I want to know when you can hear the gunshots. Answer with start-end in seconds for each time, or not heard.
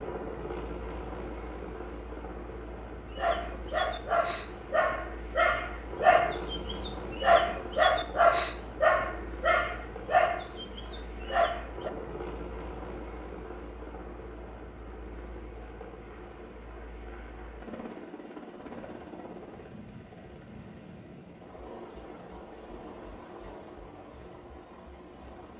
not heard.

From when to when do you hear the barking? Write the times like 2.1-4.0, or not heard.
3.1-11.9.